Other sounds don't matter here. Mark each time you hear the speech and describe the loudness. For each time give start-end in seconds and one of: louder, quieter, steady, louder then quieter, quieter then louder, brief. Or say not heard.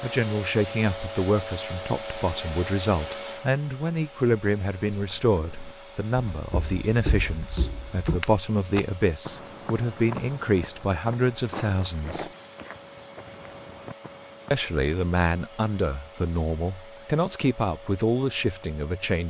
0.0-12.2 steady
14.5-19.2 steady.